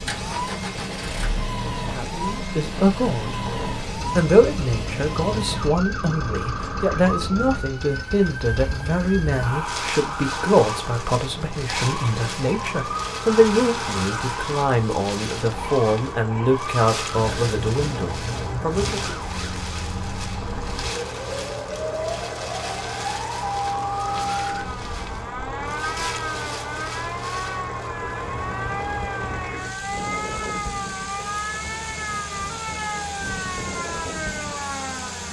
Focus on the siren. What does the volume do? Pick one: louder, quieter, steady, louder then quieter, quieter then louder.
steady.